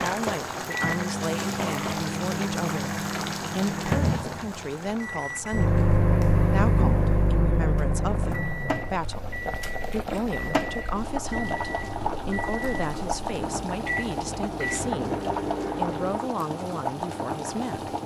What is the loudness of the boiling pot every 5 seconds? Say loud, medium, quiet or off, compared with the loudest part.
loud, medium, loud, loud.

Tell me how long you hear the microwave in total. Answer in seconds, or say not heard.
16 s.